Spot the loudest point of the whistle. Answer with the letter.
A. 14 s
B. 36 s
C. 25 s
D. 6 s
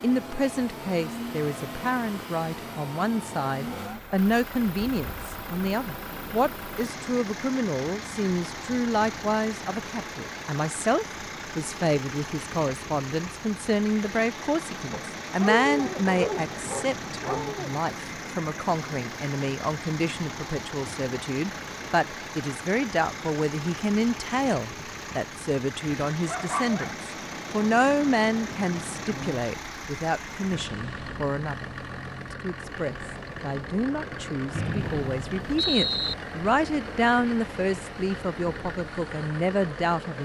B.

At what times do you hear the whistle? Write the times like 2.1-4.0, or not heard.
34.5-36.1.